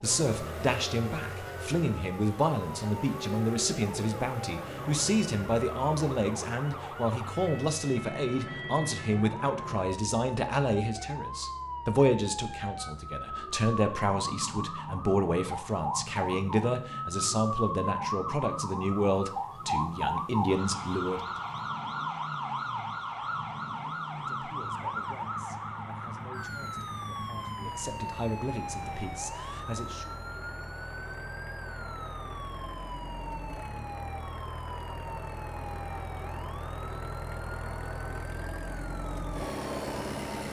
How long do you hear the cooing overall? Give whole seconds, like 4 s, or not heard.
not heard.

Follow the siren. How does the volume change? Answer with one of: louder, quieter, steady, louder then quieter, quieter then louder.
louder then quieter.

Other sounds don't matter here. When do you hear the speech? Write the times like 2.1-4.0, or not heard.
0.0-21.4, 24.2-30.1.